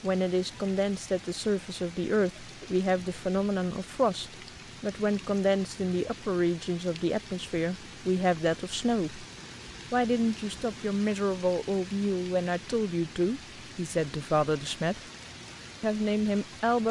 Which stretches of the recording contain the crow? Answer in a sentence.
The crow can't be heard in this clip.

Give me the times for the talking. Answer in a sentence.
The talking can be heard from 0.0 to 9.2 s, from 9.9 to 15.0 s and from 15.8 to 16.8 s.